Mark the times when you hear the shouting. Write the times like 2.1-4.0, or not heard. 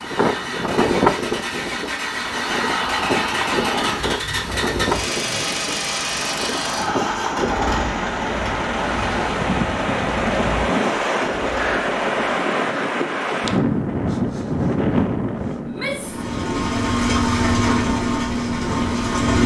2.5-4.1, 15.6-16.2.